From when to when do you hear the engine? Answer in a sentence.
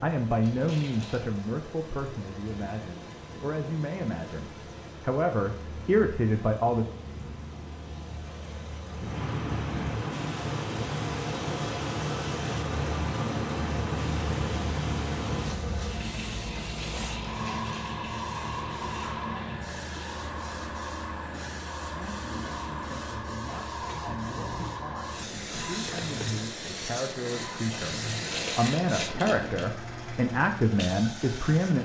You can hear the engine from 0.0 to 31.8 s.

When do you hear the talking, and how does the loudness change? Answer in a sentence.
You can hear the talking from 0.0 to 6.8 s, getting quieter then louder; and from 21.9 to 31.8 s, getting louder.